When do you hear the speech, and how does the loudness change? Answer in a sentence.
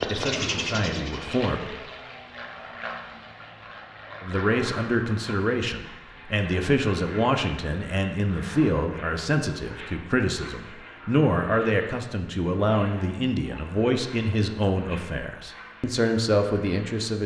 The speech can be heard briefly from 0.1 to 1.7 s; and from 4.2 to 17.2 s, at a steady volume.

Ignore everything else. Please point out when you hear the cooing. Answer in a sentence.
The cooing can be heard from 0.0 to 1.8 s.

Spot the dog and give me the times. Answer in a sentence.
You can't hear the dog here.